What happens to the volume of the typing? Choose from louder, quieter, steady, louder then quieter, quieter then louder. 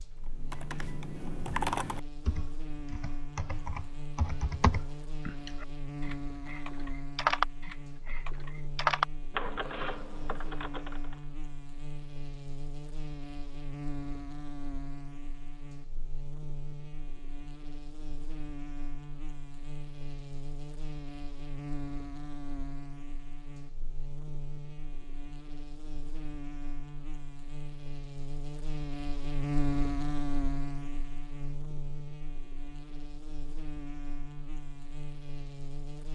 quieter then louder.